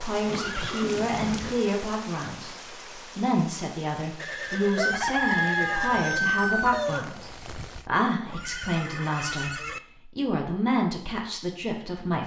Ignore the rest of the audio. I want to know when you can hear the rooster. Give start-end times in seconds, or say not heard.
4.8-7.8.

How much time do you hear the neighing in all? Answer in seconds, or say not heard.
5 s.